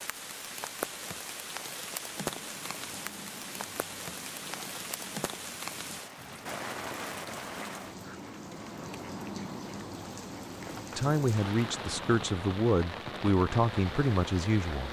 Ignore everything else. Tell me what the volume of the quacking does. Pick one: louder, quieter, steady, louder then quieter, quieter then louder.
louder.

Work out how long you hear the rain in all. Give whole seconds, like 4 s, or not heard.
15 s.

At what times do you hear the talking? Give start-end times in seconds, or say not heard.
10.9-14.8.